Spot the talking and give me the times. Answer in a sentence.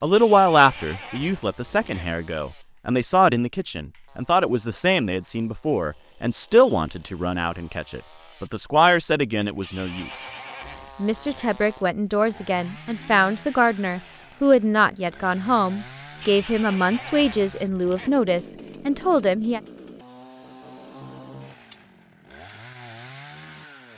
The talking can be heard from 0.0 to 10.2 s and from 10.9 to 19.6 s.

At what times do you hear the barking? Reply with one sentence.
The barking can't be heard in this clip.